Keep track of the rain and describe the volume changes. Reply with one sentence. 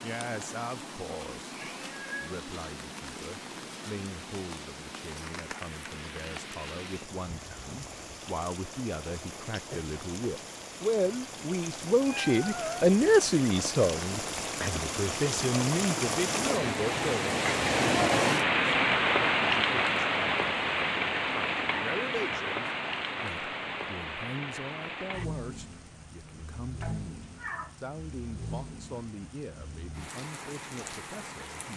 The volume of the rain goes up, then down.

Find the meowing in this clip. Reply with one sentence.
You can hear the meowing from 1.8 to 2.5 s, from 12.1 to 12.9 s and from 26.8 to 27.8 s.